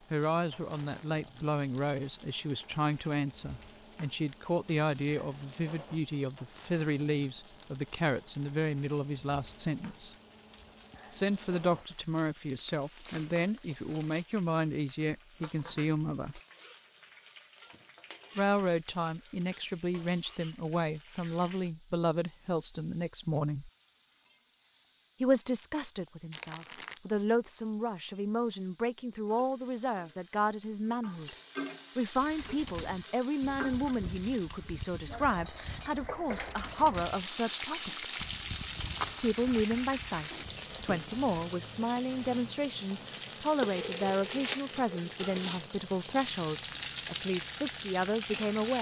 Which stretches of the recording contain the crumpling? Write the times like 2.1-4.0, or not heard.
12.4-14.2, 26.3-27.0, 43.9-45.6.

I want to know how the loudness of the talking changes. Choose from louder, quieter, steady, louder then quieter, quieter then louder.
steady.